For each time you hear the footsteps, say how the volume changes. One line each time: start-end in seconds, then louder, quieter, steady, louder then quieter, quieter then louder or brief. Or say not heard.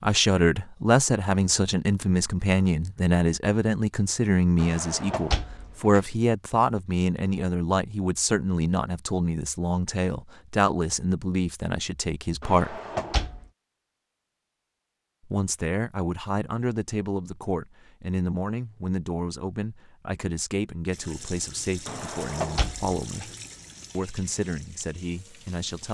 not heard.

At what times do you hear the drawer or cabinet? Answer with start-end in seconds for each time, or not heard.
4.5-6.0, 12.4-13.4, 21.9-23.3.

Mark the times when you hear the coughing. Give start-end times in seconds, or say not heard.
not heard.